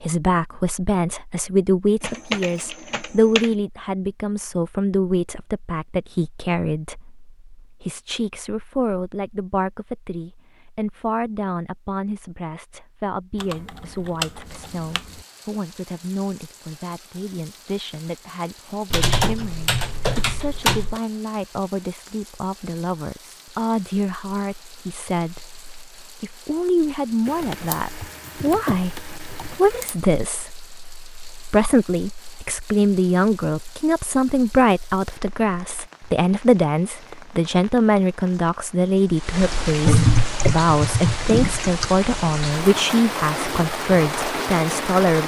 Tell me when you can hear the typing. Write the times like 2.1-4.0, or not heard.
2.0-3.5, 13.4-15.2, 18.9-21.0, 27.2-29.9, 39.9-41.9.